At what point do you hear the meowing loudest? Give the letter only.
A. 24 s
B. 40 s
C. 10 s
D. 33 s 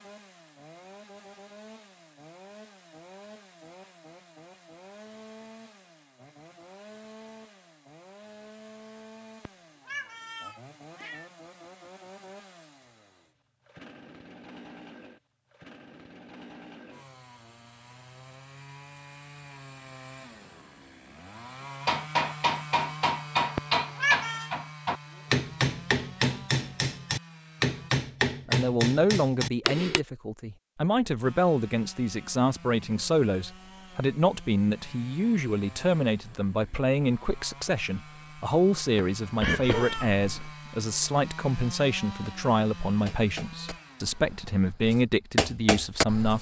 A.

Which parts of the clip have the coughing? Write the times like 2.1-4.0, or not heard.
39.4-40.5.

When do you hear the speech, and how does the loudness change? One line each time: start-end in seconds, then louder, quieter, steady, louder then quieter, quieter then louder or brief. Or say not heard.
28.4-46.3 steady.